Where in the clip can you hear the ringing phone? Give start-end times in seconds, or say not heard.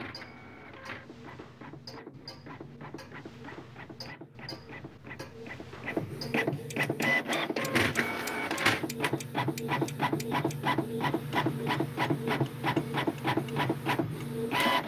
not heard.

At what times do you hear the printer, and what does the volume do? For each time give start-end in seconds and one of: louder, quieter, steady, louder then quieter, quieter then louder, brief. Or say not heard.
0.0-14.8 louder.